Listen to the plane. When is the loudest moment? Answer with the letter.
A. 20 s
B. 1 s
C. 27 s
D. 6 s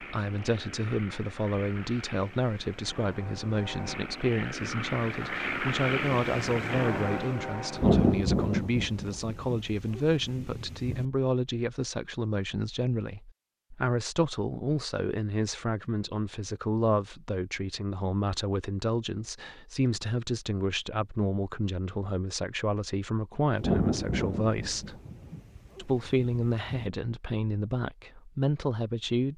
D.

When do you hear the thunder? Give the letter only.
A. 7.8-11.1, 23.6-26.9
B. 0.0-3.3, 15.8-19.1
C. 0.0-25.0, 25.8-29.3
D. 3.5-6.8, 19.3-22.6
A.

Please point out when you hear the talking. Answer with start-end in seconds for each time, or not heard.
0.0-25.0, 25.8-29.3.